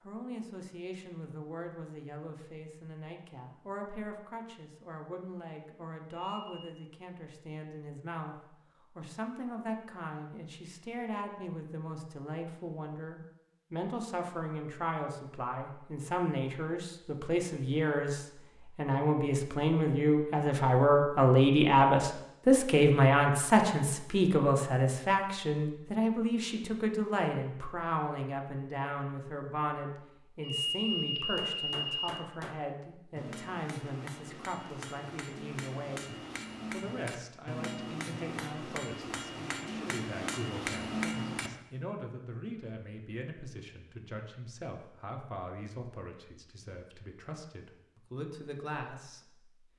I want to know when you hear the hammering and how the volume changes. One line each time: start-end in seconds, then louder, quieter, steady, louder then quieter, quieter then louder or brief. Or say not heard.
31.4-41.5 louder.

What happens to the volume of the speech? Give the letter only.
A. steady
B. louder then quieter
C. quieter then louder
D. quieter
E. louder
B.